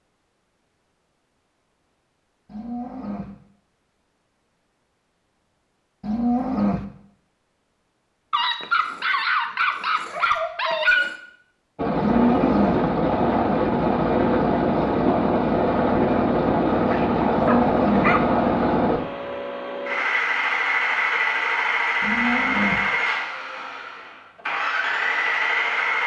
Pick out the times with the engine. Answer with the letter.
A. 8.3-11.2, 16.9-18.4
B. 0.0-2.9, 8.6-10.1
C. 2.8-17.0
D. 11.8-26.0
D.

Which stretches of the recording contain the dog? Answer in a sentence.
The dog can be heard from 8.3 to 11.2 s and from 16.9 to 18.4 s.